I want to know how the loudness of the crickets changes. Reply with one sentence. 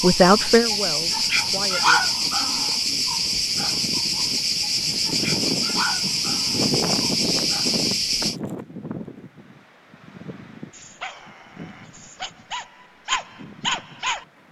The loudness of the crickets stays about the same.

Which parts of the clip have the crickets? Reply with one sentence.
You can hear the crickets from 0.0 to 8.3 s.